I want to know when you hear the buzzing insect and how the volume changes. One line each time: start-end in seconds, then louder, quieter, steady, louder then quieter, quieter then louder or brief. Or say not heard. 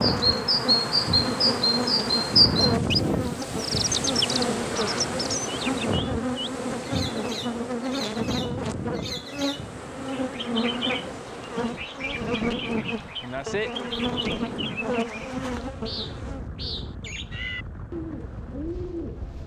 0.0-19.4 quieter.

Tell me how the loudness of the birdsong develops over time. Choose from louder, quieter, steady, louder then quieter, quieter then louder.
quieter.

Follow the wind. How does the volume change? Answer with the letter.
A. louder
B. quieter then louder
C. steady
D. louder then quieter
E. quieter
E.